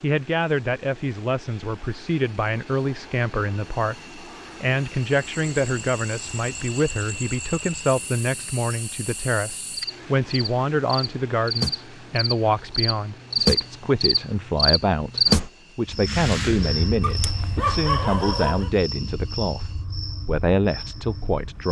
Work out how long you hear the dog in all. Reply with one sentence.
The dog can be heard for 2 seconds in total.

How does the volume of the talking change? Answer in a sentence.
The loudness of the talking stays about the same.